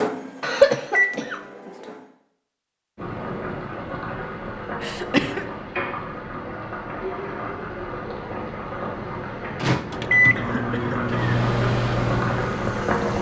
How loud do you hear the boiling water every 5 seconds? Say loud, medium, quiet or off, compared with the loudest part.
medium, medium, loud.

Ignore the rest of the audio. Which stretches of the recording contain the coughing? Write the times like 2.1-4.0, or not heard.
0.4-1.4, 4.8-5.5, 9.7-11.3.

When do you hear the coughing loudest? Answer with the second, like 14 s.
1 s.